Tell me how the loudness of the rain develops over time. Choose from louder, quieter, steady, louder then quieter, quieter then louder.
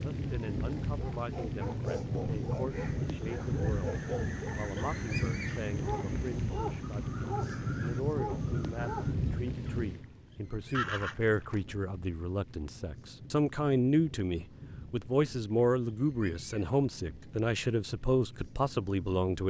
quieter.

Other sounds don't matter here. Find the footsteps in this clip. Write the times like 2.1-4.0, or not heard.
not heard.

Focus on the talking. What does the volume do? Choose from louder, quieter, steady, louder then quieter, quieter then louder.
louder.